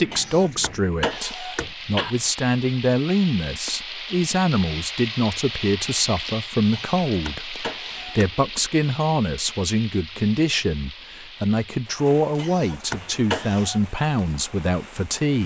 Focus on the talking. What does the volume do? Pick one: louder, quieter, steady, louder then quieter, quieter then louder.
steady.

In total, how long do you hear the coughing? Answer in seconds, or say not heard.
5 s.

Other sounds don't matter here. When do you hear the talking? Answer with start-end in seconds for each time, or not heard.
0.0-15.4.